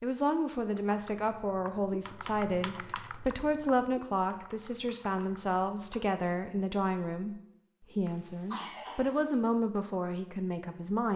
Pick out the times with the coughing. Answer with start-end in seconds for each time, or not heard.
8.1-9.2.